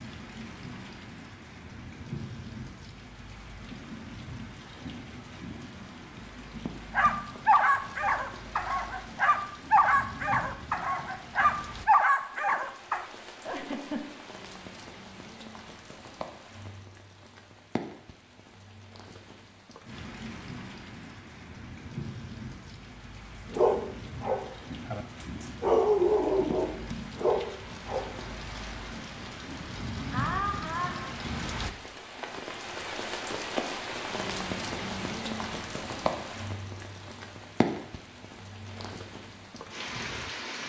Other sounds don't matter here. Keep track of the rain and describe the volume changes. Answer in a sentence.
The loudness of the rain goes up.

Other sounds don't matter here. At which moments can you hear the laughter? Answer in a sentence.
You can hear the laughter from 13.4 to 14.2 s and from 30.1 to 31.1 s.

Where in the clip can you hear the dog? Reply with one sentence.
The dog can be heard from 6.9 to 13.1 s and from 23.5 to 28.1 s.